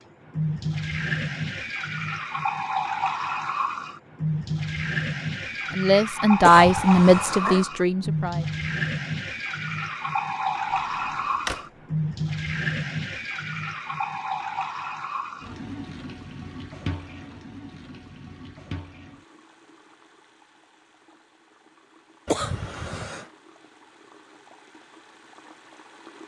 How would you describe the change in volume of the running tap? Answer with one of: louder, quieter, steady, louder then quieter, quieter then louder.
quieter.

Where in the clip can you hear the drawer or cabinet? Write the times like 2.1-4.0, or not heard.
10.7-11.7.